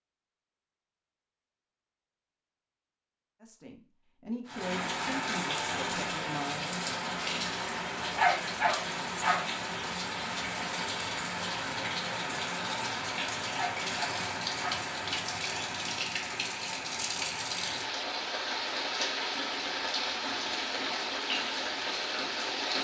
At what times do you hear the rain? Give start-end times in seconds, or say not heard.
4.5-22.8.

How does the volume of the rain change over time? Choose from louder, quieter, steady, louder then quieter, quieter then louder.
steady.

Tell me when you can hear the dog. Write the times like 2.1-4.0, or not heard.
8.2-9.4, 13.6-14.8.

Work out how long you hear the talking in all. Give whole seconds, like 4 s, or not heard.
3 s.